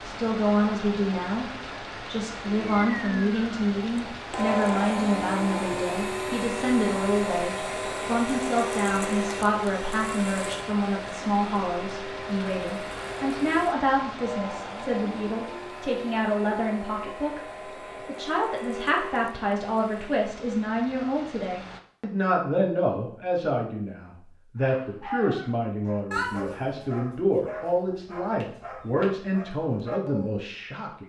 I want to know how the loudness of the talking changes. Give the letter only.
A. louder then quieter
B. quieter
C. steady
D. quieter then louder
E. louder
C.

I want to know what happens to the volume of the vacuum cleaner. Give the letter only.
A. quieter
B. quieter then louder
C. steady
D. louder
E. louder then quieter
A.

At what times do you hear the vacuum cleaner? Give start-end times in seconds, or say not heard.
2.5-20.2.